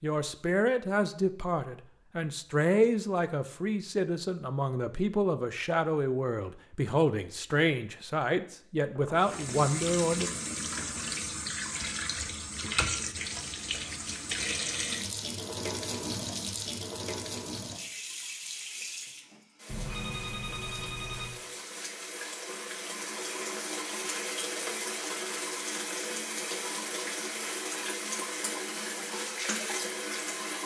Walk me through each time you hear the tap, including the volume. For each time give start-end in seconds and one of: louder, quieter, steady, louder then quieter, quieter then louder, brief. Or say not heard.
9.2-30.6 quieter then louder.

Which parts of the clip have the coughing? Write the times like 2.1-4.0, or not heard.
not heard.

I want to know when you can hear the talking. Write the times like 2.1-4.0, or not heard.
0.0-10.3.